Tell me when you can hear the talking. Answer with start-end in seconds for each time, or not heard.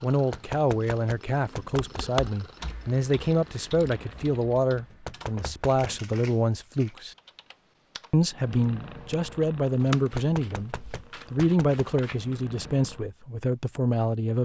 0.0-7.2, 8.1-14.3.